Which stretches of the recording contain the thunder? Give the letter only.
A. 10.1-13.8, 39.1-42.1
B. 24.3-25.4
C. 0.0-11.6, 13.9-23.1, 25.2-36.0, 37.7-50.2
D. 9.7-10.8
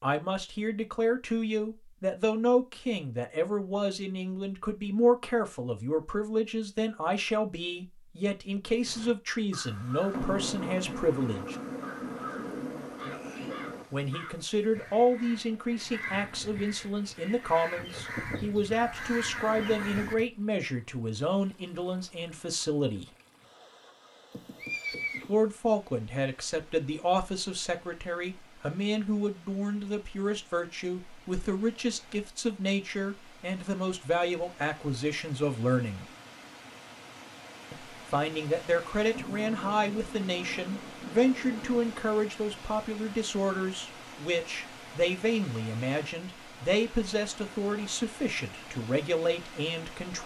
A.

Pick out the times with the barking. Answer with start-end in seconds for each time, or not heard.
not heard.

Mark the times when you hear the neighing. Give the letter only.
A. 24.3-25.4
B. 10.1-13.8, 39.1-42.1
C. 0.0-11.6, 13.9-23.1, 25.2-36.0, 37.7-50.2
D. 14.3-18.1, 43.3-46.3
A.